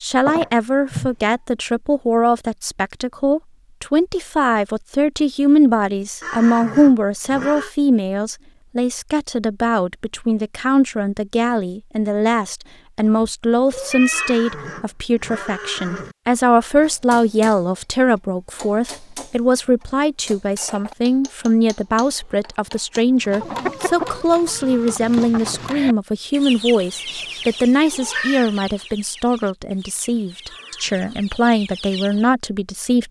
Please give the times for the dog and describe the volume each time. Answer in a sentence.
The dog can't be heard in this clip.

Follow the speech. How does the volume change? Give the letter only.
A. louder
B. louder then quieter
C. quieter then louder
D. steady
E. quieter
D.